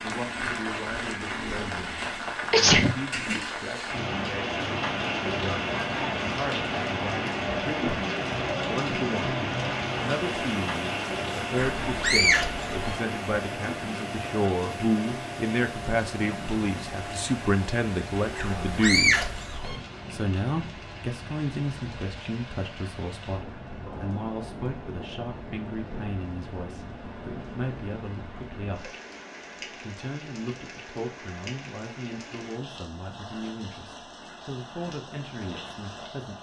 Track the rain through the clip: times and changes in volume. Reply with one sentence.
The rain can be heard from 0.0 to 36.3 s, getting quieter.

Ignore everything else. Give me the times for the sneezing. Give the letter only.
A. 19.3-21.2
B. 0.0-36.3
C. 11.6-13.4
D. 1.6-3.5
D.